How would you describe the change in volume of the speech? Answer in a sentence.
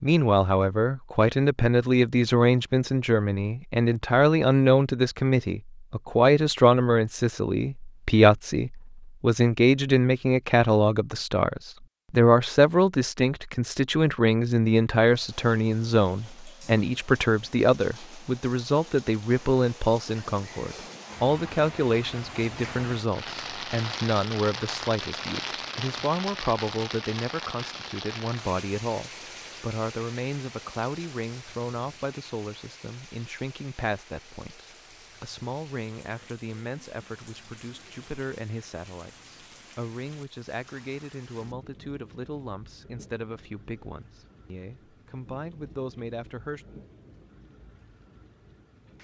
The loudness of the speech goes down.